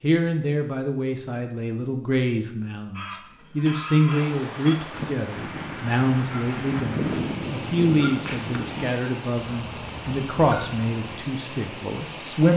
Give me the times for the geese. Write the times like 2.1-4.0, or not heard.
2.9-11.2.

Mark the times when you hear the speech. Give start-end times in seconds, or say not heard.
0.0-12.5.